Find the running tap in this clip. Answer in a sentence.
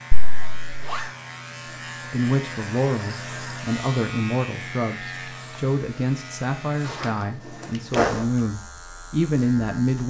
The running tap can't be heard in this clip.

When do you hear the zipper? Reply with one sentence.
The zipper can be heard from 0.1 to 1.1 s and from 6.8 to 8.2 s.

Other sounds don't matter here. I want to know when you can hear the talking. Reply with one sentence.
The talking can be heard from 2.1 to 10.0 s.